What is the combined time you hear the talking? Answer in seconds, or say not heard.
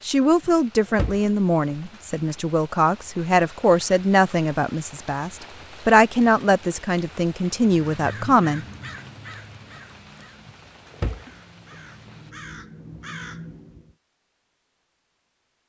9 s.